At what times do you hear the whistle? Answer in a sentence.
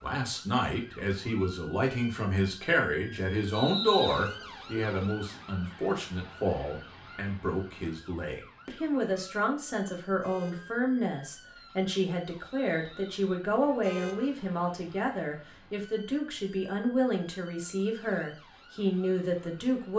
The whistle can be heard from 3.5 to 4.2 s and from 12.3 to 13.2 s.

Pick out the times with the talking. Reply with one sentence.
The talking can be heard from 0.0 to 19.9 s.